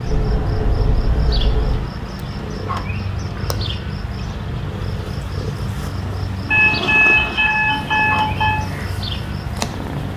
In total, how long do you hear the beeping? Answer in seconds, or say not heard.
4 s.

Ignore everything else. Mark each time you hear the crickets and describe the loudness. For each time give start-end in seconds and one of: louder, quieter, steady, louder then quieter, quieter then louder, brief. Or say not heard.
0.0-10.1 steady.